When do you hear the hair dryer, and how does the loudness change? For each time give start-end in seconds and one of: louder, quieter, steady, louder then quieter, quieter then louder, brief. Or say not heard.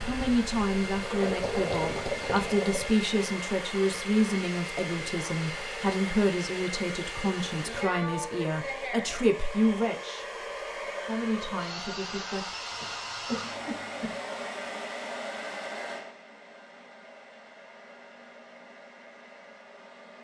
0.0-20.1 quieter.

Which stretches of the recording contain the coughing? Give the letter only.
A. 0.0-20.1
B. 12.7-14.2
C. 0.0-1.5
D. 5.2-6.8
B.